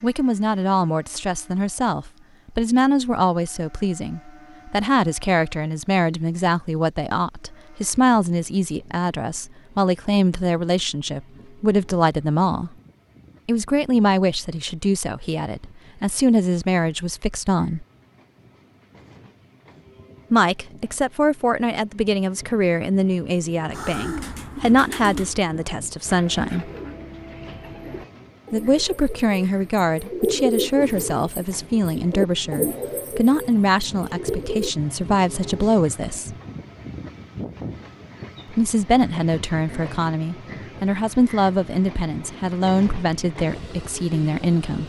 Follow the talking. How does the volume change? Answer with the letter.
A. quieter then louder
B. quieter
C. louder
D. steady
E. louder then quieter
D.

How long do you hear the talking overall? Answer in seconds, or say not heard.
38 s.